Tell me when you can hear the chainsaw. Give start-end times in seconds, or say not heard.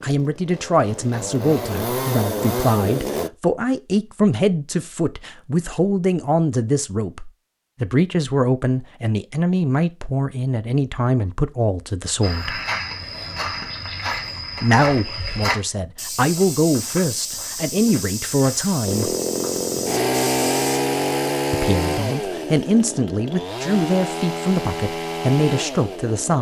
0.0-3.3, 18.9-26.3.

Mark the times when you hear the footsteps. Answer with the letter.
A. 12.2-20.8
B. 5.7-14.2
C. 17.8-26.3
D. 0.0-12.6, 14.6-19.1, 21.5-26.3
A.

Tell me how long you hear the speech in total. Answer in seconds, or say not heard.
22 s.